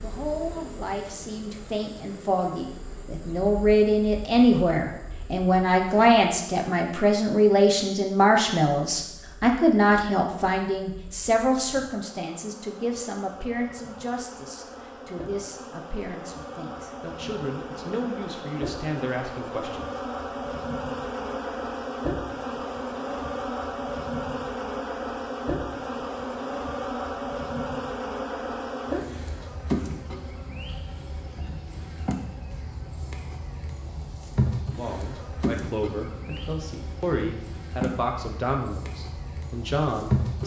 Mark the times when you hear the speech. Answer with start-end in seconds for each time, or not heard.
0.0-19.9, 34.6-40.4.